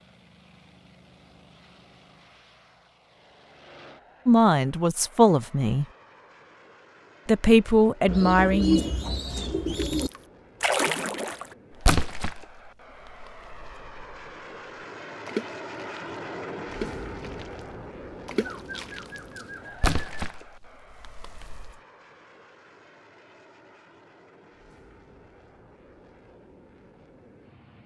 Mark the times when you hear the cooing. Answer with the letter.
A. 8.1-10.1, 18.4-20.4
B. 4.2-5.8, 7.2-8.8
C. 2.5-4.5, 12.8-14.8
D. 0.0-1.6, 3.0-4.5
A.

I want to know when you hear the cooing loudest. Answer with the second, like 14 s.
9 s.